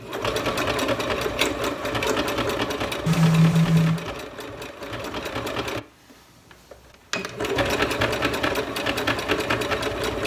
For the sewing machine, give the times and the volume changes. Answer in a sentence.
The sewing machine can be heard from 0.0 to 10.2 s, getting quieter then louder.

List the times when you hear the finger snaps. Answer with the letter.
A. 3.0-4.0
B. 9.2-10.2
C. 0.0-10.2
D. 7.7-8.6
A.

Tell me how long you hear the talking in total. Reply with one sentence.
The talking can't be heard in this clip.